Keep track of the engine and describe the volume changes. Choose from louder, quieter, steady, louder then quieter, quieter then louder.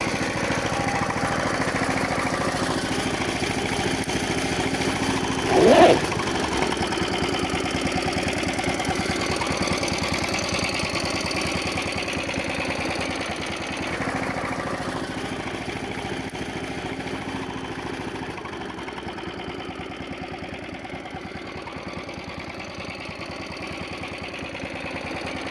quieter.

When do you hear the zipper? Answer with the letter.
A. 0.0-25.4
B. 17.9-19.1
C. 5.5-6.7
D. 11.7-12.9
C.